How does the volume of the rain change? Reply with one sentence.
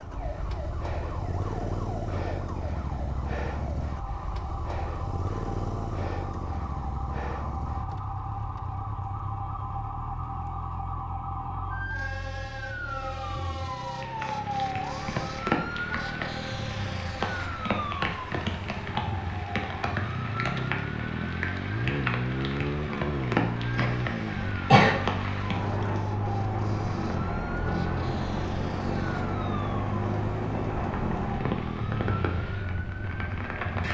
The volume of the rain stays about the same.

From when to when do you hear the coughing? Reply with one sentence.
The coughing can be heard from 23.8 to 24.9 s.